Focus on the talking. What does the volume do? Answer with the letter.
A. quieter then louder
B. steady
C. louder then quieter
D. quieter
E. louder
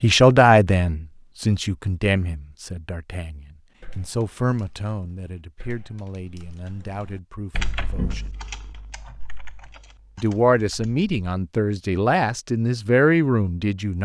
A.